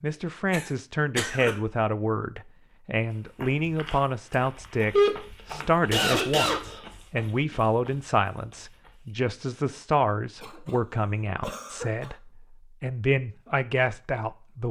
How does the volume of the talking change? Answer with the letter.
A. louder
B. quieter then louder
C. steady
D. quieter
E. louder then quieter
C.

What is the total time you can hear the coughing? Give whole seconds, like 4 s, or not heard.
4 s.